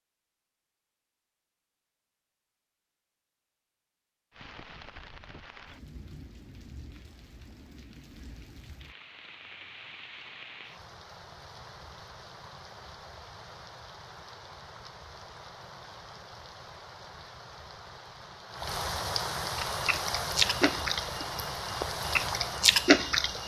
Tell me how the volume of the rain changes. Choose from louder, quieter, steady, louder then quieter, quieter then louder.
louder.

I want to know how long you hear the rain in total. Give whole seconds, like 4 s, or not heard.
19 s.